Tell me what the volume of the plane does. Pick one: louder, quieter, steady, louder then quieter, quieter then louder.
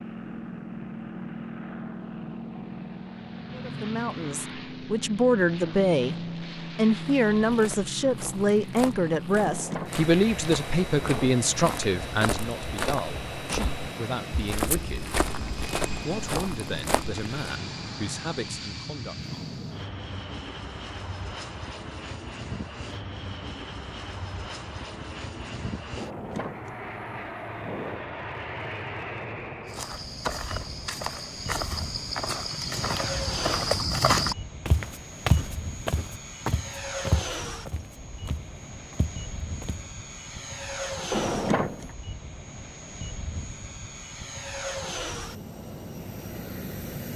steady.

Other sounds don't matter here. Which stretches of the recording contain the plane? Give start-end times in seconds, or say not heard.
0.0-47.1.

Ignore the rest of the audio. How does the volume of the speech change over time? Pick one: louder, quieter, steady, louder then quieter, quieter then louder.
quieter.